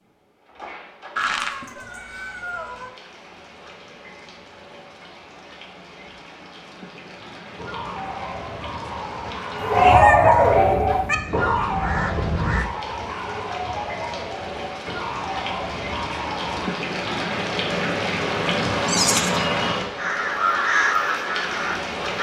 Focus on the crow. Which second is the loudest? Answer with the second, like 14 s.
21 s.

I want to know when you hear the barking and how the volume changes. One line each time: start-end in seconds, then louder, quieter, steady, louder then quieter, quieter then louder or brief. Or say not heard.
7.5-16.8 louder then quieter.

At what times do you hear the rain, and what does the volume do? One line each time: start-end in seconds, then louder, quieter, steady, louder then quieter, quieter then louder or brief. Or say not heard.
0.0-22.1 louder.